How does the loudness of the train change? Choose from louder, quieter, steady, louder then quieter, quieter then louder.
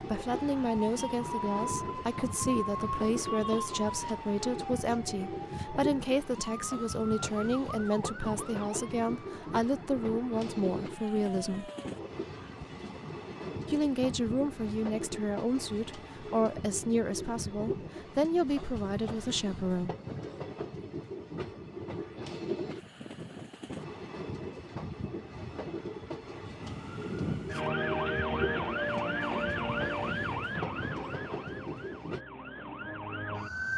steady.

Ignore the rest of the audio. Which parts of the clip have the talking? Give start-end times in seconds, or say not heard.
0.0-11.7, 13.7-19.9.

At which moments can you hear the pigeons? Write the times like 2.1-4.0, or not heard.
not heard.